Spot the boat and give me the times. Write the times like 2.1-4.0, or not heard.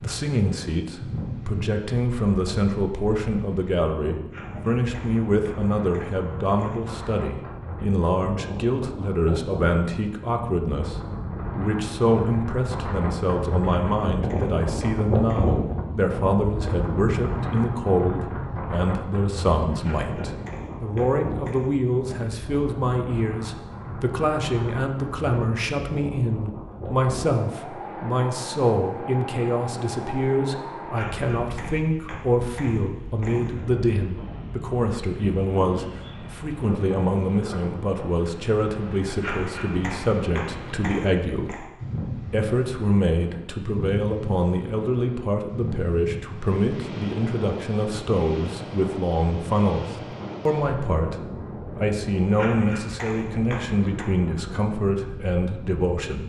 not heard.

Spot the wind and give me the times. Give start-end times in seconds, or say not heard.
0.0-56.0.